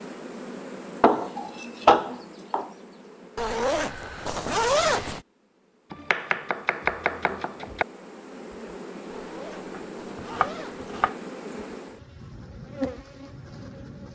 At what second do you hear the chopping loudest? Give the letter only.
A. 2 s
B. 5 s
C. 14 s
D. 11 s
A.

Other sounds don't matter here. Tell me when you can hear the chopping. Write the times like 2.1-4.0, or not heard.
1.0-2.7, 5.9-7.8, 10.3-11.2.